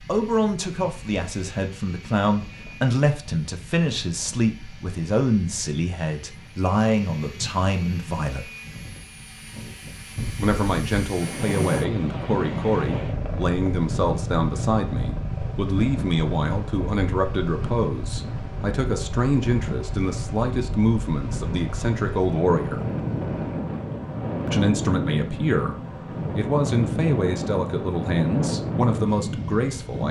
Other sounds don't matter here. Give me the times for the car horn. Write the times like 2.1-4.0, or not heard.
not heard.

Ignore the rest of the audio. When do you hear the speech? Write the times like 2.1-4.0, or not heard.
0.0-8.5, 10.3-22.9, 24.4-30.0.